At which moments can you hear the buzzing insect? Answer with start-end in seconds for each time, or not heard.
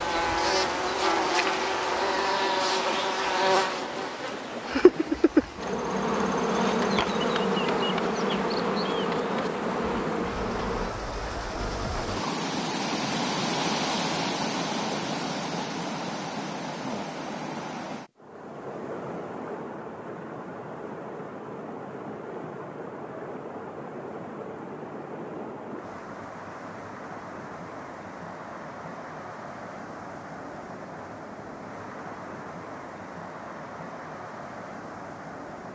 0.0-10.9.